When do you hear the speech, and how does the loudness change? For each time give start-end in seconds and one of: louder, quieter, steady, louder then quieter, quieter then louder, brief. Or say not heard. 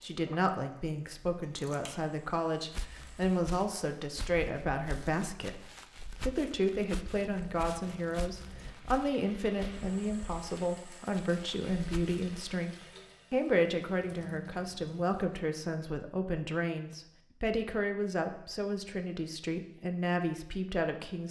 0.0-21.2 steady.